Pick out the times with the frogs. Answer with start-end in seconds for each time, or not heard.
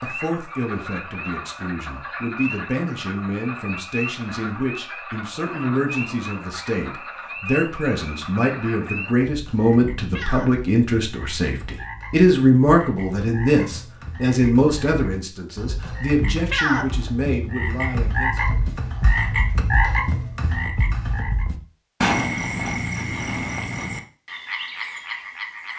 0.0-25.7.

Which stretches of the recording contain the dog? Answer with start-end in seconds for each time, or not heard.
not heard.